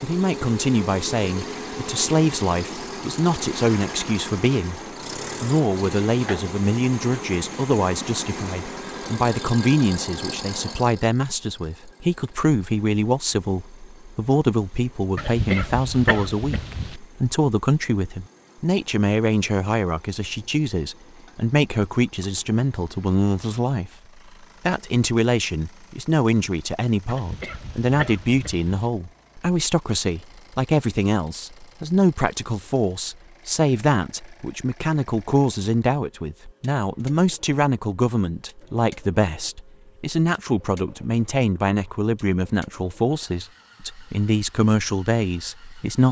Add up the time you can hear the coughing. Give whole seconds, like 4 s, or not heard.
4 s.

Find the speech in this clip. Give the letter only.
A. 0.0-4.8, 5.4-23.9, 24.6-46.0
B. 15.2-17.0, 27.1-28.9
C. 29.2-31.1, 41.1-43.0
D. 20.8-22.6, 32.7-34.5
A.